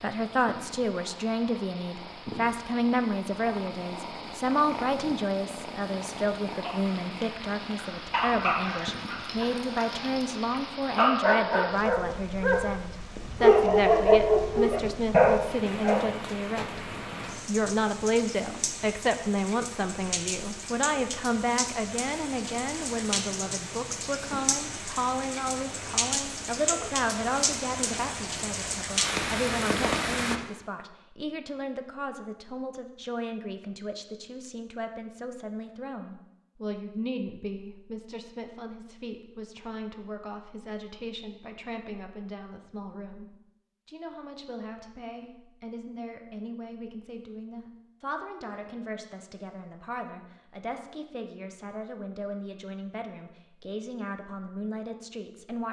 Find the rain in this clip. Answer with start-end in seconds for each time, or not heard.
0.0-30.4.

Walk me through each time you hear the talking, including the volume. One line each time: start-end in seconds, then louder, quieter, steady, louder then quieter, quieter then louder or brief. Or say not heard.
0.0-55.6 quieter.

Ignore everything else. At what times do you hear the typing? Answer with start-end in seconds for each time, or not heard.
not heard.